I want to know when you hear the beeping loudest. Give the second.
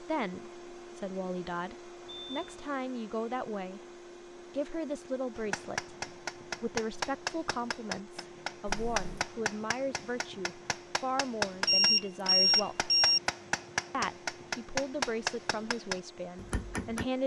12 s.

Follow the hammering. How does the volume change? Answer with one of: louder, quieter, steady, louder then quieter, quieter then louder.
steady.